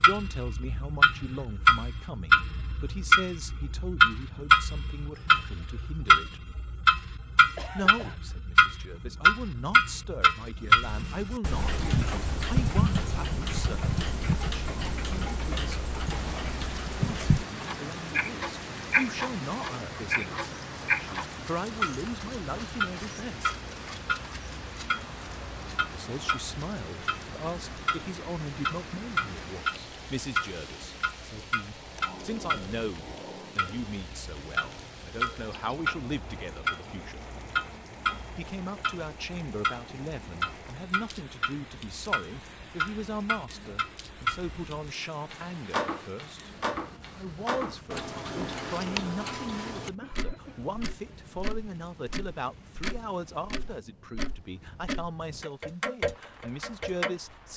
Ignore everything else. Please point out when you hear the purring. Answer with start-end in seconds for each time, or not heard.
not heard.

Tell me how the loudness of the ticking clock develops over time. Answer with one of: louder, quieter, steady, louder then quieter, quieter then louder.
quieter.